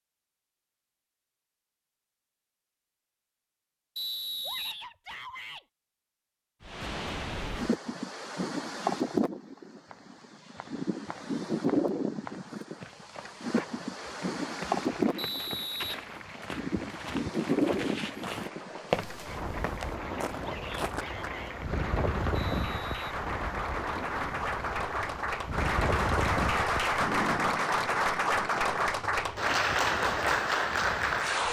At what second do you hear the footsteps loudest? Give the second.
19 s.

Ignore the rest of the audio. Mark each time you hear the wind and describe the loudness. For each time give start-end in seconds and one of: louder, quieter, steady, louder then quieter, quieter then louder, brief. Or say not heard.
6.6-31.4 quieter.